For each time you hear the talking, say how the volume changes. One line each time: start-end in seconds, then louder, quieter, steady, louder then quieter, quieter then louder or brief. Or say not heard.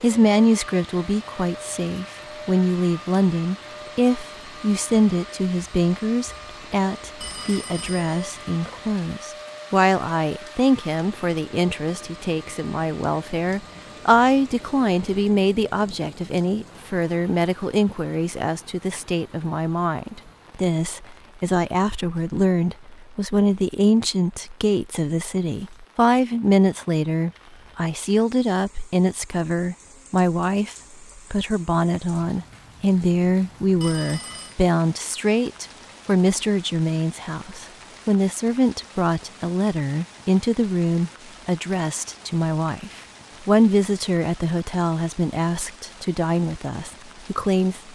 0.0-47.9 steady.